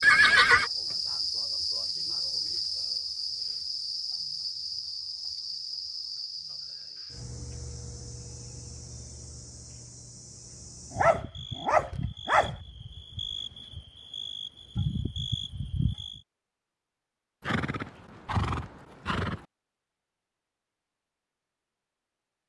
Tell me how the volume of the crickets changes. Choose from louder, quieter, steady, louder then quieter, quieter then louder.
quieter then louder.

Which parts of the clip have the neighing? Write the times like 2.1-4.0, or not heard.
0.0-0.7, 17.4-19.4.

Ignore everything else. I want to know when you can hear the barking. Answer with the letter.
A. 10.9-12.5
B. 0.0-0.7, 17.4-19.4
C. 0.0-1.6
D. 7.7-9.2
A.